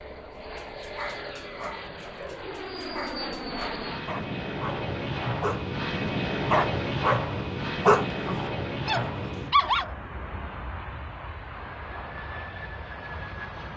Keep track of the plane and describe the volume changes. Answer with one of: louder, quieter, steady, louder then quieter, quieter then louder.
louder then quieter.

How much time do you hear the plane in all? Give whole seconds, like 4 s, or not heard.
14 s.